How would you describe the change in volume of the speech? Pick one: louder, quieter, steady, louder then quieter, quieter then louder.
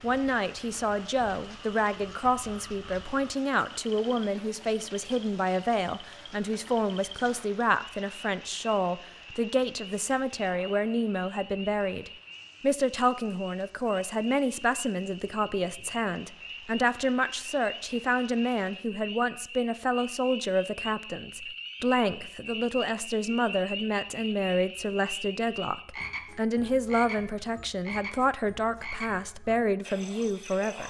steady.